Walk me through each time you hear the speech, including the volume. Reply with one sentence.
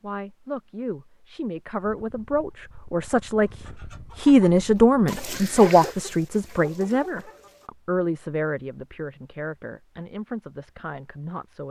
You can hear the speech from 0.0 to 11.6 s, getting louder then quieter.